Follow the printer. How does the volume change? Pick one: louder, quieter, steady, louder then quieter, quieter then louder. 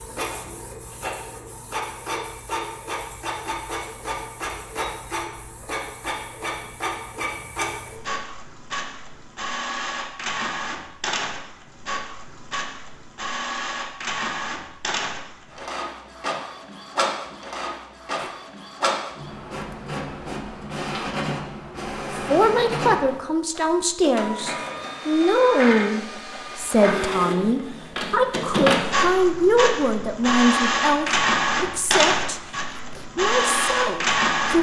louder.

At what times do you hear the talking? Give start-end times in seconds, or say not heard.
22.1-34.5.